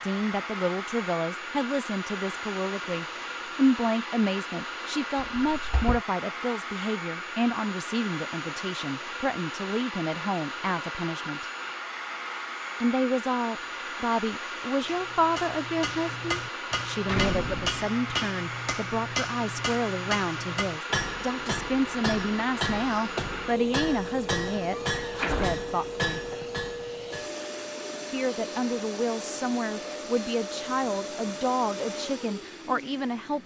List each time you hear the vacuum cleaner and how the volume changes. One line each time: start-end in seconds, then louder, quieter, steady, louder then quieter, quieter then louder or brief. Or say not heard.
0.0-33.4 steady.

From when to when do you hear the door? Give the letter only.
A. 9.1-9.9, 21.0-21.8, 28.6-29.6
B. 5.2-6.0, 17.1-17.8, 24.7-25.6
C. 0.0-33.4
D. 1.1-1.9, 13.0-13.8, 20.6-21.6
B.